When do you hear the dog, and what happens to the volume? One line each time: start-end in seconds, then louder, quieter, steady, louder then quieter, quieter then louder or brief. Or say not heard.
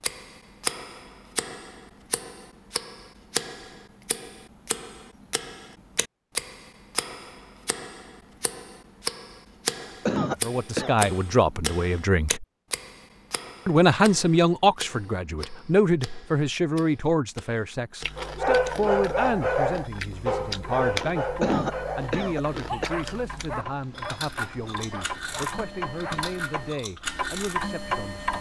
18.1-26.4 quieter.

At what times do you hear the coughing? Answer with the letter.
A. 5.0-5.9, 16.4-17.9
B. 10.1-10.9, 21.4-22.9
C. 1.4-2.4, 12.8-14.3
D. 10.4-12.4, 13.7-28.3
B.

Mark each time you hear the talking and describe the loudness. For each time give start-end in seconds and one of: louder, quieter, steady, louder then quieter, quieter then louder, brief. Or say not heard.
10.4-12.4 brief
13.7-28.3 quieter.